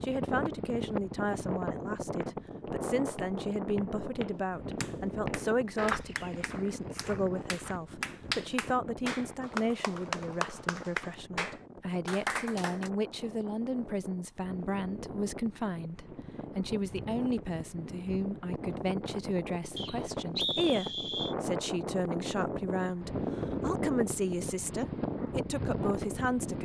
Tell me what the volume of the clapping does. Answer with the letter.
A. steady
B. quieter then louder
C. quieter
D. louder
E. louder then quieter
D.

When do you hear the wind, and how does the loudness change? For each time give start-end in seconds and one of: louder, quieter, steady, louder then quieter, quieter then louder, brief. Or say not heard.
0.0-26.6 quieter then louder.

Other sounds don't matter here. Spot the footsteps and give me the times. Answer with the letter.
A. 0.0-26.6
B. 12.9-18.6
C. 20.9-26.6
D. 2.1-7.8
D.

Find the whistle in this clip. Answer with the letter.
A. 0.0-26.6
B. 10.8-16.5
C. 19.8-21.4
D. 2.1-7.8
C.